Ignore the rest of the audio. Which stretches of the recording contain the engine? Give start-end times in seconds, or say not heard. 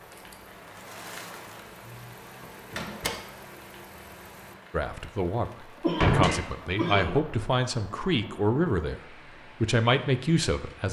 0.0-4.5.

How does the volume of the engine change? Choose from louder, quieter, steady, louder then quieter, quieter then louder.
louder.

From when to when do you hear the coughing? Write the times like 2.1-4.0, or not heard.
5.8-7.2.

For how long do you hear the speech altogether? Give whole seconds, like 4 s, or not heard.
6 s.